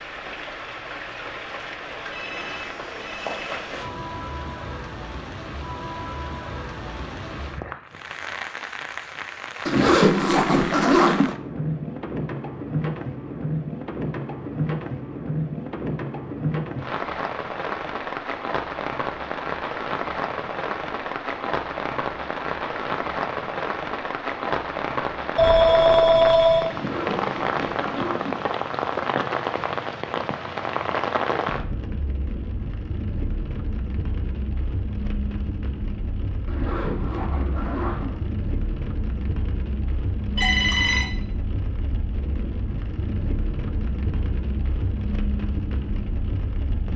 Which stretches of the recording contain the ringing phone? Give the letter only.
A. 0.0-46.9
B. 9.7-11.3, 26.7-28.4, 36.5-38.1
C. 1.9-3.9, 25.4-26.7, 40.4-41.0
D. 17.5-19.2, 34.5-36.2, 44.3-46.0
C.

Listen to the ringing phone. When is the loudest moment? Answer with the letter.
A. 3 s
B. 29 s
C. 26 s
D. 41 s
C.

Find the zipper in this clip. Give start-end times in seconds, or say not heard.
9.7-11.3, 26.7-28.4, 36.5-38.1.